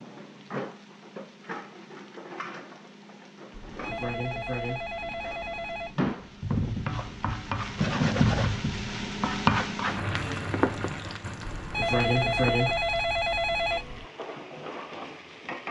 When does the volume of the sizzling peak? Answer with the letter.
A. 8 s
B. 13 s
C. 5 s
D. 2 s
A.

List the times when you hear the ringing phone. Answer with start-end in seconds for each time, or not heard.
3.5-6.0, 11.6-14.1.